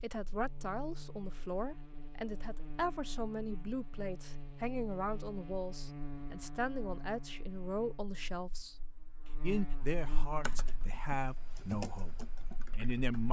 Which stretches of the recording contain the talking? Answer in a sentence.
The talking can be heard from 0.0 to 8.8 s and from 9.4 to 13.2 s.